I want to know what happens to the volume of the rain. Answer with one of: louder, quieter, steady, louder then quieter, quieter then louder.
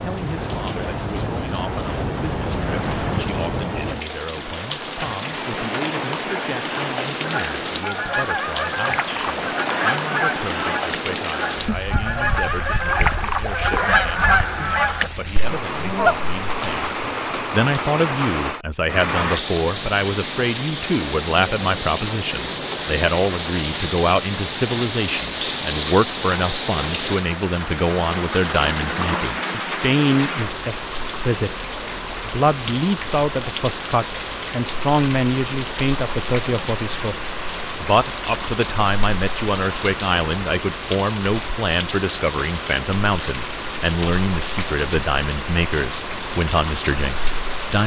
steady.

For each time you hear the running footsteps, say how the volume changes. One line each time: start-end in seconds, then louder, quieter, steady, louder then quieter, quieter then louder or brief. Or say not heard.
not heard.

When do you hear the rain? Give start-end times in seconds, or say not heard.
0.0-47.8.